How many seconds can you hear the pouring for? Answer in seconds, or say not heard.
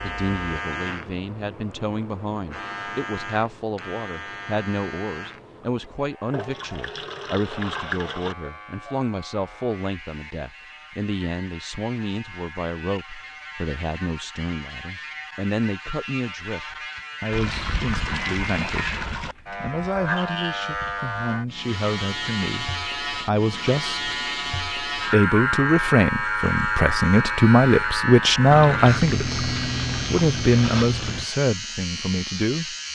7 s.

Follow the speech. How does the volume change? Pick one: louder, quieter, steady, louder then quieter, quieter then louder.
louder.